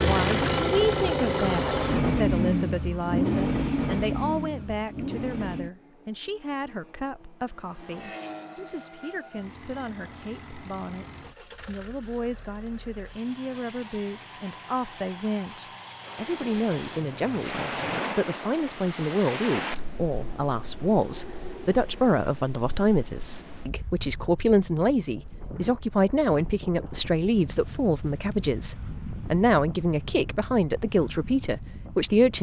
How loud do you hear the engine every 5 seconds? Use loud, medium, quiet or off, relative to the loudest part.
loud, quiet, quiet, quiet, off, off, off.